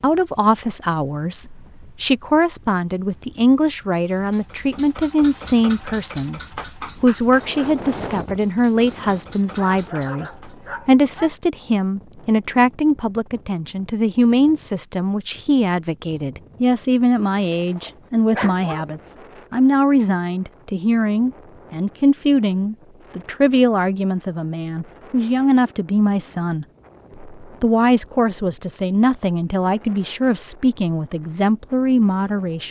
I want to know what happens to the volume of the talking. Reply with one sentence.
The loudness of the talking stays about the same.